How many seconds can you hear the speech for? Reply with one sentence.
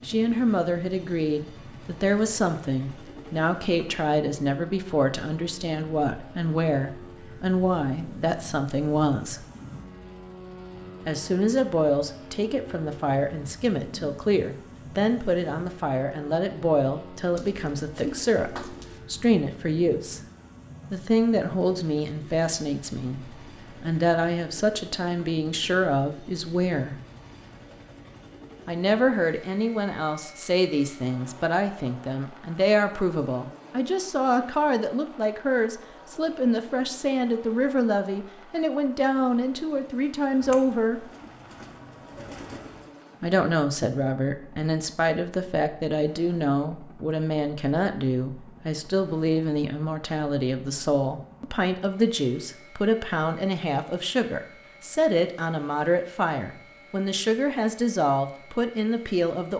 You can hear the speech for 53 seconds altogether.